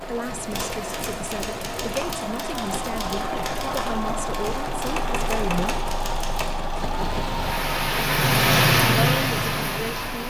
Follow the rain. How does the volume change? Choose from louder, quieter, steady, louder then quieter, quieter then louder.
louder.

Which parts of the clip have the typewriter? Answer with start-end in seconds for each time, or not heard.
0.5-6.5.